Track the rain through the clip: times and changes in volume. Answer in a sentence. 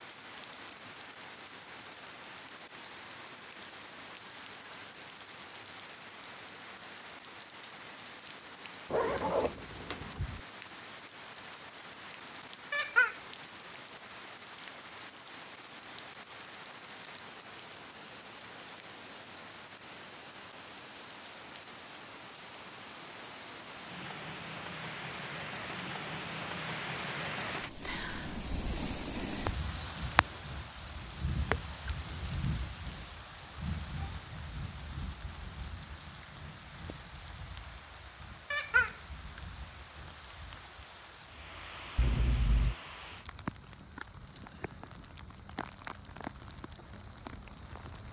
The rain can be heard from 0.0 to 48.0 s, getting louder then quieter.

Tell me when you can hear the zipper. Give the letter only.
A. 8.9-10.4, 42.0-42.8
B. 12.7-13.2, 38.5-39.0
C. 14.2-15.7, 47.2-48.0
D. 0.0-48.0
A.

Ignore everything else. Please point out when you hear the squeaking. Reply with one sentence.
The squeaking can be heard from 12.7 to 13.2 s and from 38.5 to 39.0 s.